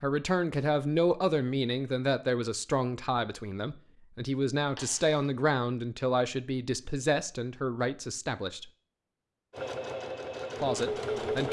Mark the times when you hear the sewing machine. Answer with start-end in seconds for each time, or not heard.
9.5-11.4.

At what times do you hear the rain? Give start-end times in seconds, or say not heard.
not heard.